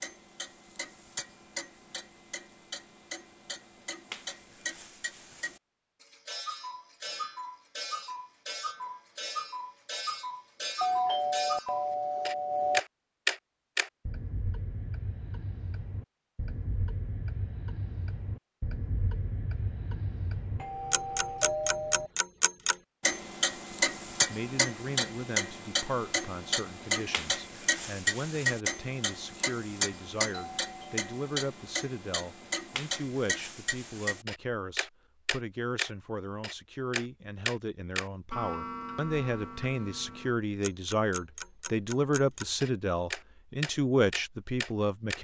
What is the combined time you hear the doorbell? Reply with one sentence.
The doorbell can be heard for 4 seconds in total.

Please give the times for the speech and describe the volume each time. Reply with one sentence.
You can hear the speech from 24.2 to 45.1 s, getting louder.